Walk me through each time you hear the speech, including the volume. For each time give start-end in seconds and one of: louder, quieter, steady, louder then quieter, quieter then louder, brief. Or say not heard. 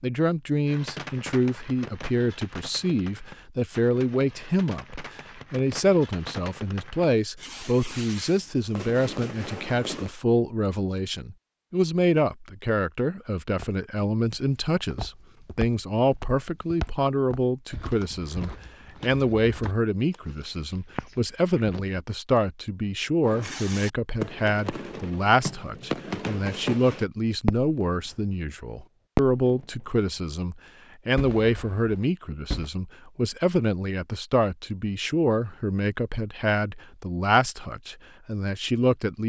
0.0-39.2 steady.